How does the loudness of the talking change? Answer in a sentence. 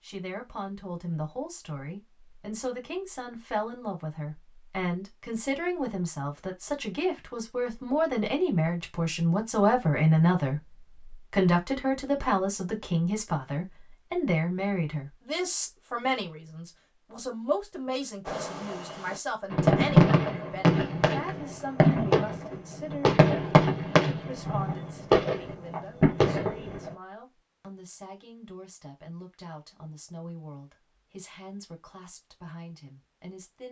The volume of the talking goes up, then down.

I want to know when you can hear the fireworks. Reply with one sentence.
You can hear the fireworks from 18.2 to 26.9 s.